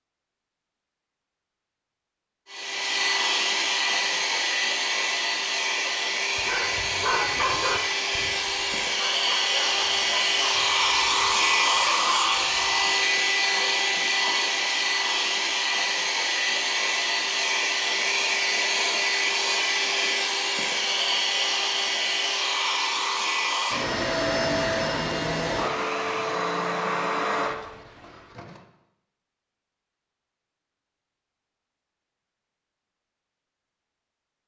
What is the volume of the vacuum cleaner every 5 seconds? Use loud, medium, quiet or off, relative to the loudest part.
loud, loud, loud, loud, loud, medium, off.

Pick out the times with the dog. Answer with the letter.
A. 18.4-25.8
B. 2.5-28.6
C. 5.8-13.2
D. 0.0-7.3
C.